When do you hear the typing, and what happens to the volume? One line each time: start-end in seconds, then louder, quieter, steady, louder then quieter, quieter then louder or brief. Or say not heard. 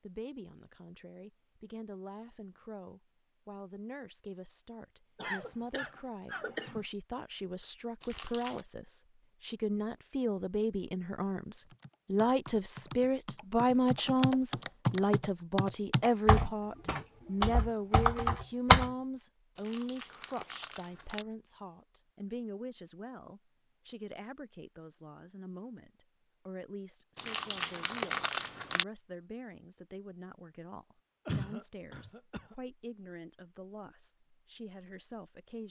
11.7-18.9 louder.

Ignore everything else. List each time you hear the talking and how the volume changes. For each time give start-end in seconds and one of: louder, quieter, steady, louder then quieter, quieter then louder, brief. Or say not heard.
0.0-35.6 louder then quieter.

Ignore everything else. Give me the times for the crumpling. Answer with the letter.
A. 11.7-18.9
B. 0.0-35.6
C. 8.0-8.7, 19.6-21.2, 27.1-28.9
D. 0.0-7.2
C.